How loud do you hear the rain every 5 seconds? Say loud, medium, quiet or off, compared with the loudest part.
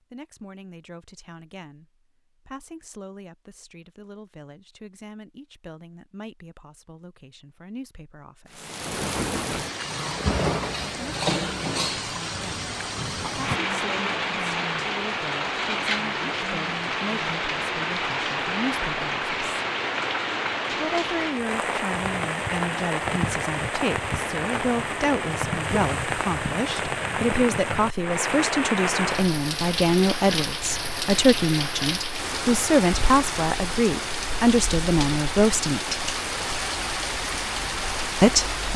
off, loud, loud, loud, loud, loud, loud, loud.